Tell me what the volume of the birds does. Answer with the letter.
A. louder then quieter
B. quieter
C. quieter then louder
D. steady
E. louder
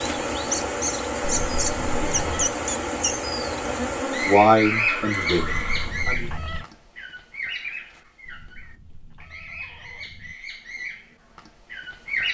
B.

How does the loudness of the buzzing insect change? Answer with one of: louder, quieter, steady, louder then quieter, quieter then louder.
quieter.